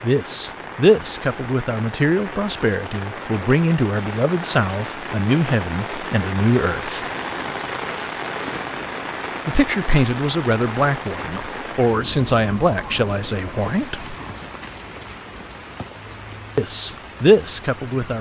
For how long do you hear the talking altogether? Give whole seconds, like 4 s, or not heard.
13 s.